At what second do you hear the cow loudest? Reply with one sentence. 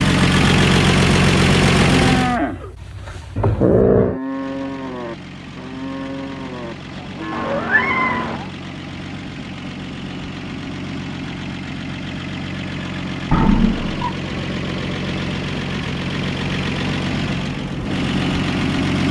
The volume of the cow peaks at 2 seconds.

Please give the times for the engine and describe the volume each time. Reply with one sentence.
The engine can be heard briefly from 0.0 to 2.4 s; and from 4.2 to 19.0 s, getting louder.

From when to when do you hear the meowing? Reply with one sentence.
The meowing can be heard from 3.4 to 4.2 s, from 7.3 to 8.4 s and from 13.3 to 14.1 s.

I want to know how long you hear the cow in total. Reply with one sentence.
The cow can be heard for 7 seconds in total.